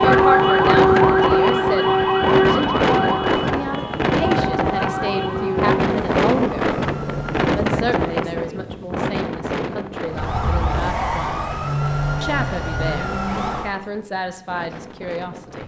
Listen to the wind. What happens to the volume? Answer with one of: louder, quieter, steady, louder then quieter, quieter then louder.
quieter.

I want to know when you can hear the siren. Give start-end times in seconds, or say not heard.
0.0-7.5, 10.1-13.8.